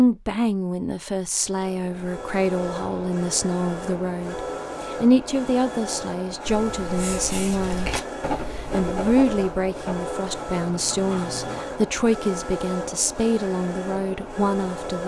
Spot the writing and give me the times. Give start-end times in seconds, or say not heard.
6.4-11.7.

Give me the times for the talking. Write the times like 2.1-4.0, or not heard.
0.0-15.0.